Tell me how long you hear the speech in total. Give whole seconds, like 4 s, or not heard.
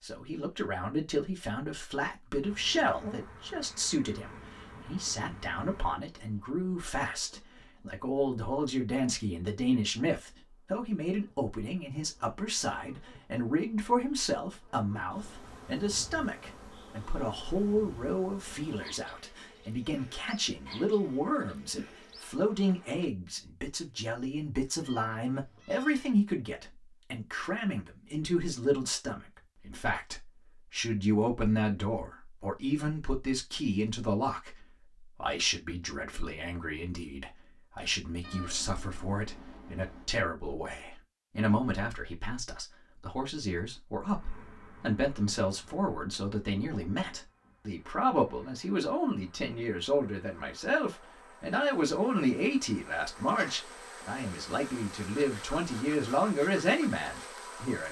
58 s.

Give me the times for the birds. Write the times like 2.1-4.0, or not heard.
not heard.